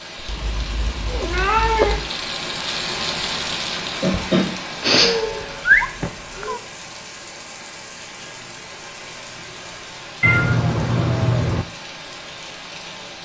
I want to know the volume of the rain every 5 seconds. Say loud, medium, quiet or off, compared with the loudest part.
loud, medium, medium.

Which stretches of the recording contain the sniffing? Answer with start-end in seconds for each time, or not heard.
4.0-5.2.